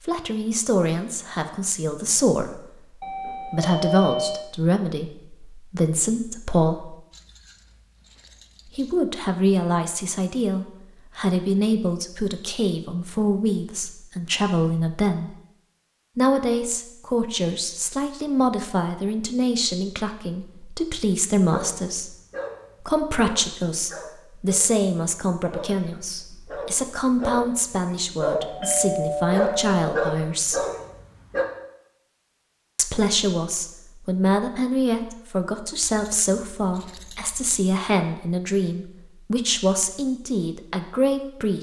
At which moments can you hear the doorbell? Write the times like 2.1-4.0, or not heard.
3.0-4.5, 28.4-29.7.